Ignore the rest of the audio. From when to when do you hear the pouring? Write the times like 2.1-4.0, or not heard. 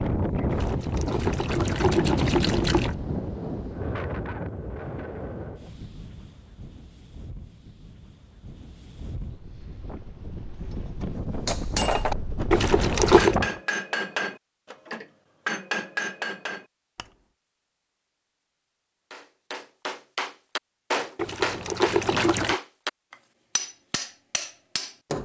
0.5-3.0, 12.5-13.3, 21.1-22.6.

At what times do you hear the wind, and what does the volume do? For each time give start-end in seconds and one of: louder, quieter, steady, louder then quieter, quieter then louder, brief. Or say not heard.
0.0-13.6 quieter then louder.